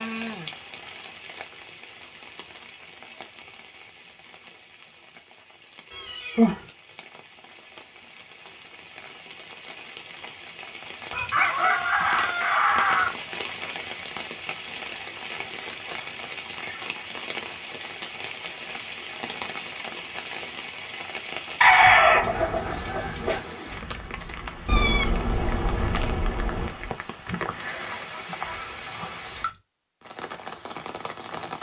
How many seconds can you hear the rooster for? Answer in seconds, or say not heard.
4 s.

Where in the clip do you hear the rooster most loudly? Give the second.
22 s.